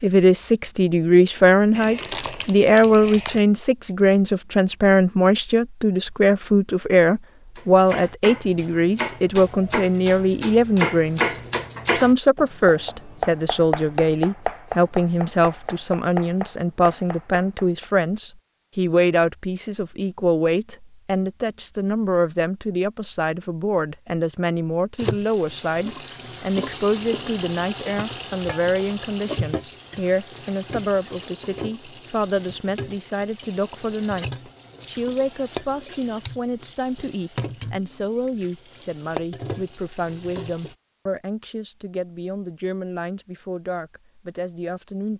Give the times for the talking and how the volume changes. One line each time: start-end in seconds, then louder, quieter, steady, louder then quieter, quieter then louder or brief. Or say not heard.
0.0-45.1 quieter.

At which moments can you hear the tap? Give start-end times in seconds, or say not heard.
24.9-40.8.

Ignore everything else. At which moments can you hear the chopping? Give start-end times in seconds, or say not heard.
7.5-17.9.